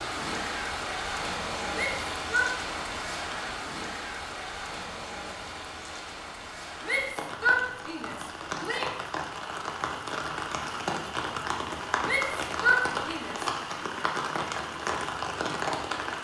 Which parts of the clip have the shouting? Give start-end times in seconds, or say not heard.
1.7-2.5, 6.8-8.9, 12.1-13.8.